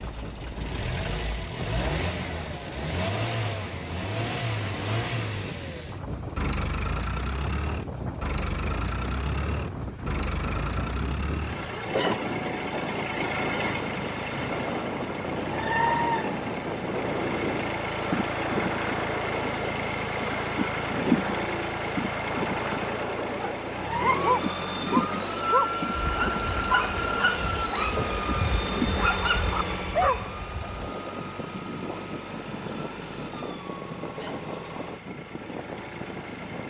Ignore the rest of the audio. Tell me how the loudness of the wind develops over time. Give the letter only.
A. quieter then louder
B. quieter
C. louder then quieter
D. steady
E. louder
C.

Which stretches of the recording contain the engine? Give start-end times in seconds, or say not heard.
0.0-36.6.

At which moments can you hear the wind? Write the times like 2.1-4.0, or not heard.
0.0-36.6.